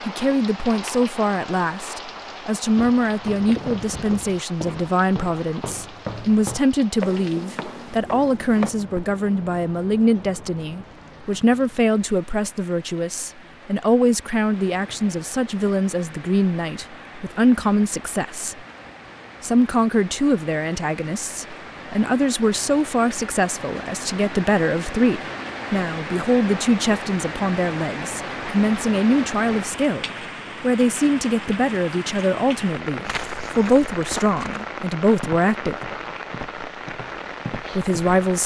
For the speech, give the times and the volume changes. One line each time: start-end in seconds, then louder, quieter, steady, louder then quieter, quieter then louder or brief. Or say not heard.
0.1-18.6 steady
19.4-35.8 steady
37.8-38.4 brief.